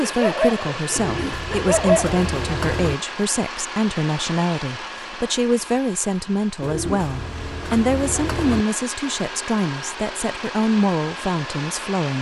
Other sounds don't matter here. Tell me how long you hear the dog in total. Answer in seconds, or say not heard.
2 s.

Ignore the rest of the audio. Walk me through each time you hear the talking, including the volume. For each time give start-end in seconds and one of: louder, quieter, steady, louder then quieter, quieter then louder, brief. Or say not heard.
0.0-12.1 steady.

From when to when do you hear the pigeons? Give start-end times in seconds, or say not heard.
0.9-3.0, 6.6-8.7.